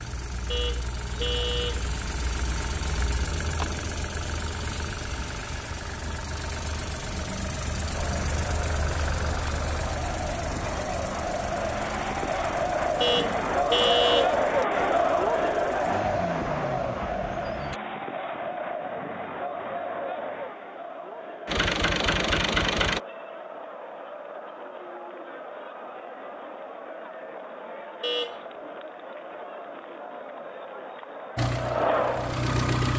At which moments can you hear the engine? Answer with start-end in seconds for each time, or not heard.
0.0-17.8, 21.4-23.0, 31.4-32.9.